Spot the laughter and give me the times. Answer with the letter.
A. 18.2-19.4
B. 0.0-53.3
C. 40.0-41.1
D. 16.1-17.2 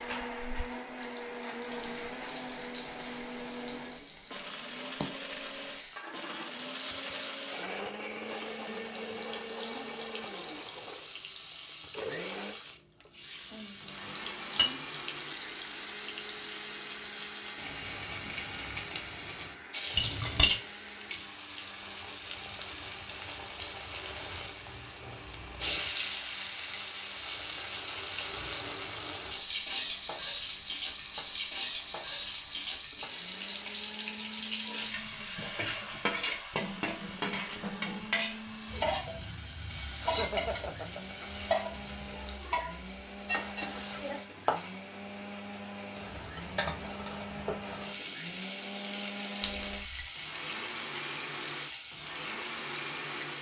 C.